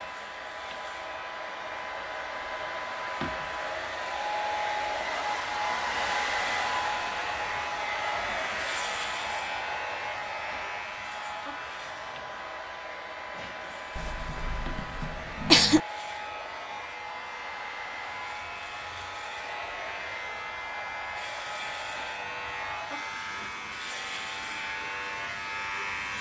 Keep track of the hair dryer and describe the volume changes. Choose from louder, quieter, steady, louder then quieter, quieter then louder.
quieter.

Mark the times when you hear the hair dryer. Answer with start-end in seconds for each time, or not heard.
0.0-26.1.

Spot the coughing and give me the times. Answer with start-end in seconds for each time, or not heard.
13.9-15.8.